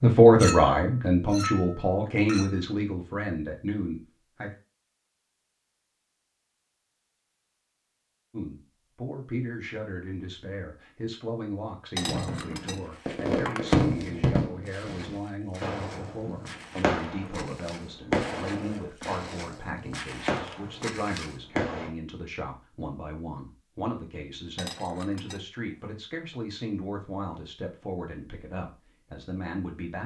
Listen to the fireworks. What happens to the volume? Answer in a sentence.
The loudness of the fireworks goes down.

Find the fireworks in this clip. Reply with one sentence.
The fireworks can be heard from 12.0 to 21.9 s.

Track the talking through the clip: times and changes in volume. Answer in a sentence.
The talking can be heard from 0.0 to 4.5 s, getting quieter; and from 8.3 to 30.0 s, at a steady volume.